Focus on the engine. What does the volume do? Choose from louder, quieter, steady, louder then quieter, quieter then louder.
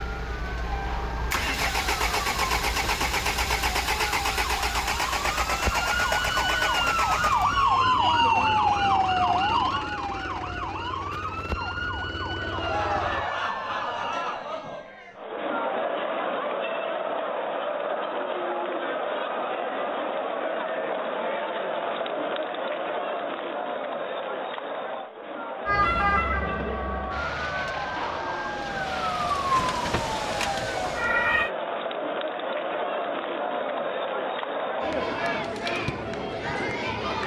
quieter.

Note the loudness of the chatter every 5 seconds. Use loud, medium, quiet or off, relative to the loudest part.
off, off, loud, loud, loud, medium, loud, loud.